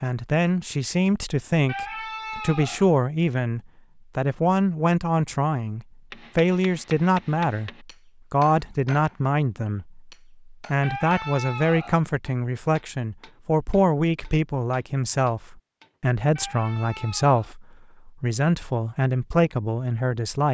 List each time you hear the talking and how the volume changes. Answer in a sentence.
The talking can be heard from 0.0 to 20.4 s, at a steady volume.